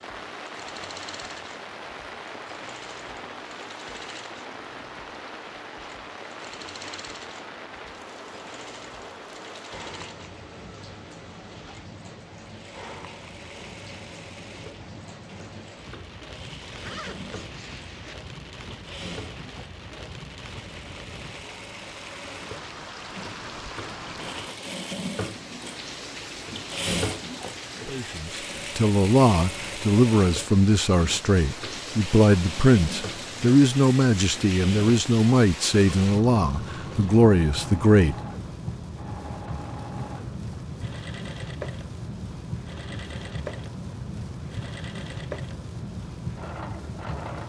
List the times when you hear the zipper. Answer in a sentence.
You can hear the zipper from 16.7 to 18.1 s.